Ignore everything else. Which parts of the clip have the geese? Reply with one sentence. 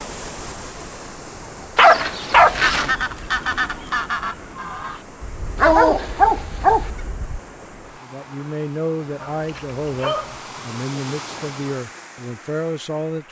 The geese can be heard from 2.3 to 7.4 s.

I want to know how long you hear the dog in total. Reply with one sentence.
The dog can be heard for 4 seconds in total.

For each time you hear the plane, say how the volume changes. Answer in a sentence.
You can't hear the plane here.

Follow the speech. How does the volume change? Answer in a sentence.
The loudness of the speech stays about the same.